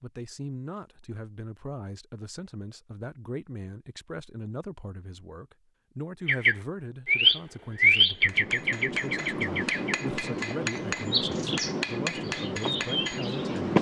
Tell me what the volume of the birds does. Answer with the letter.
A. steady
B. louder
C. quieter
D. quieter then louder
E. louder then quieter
C.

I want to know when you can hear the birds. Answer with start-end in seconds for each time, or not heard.
6.2-13.7.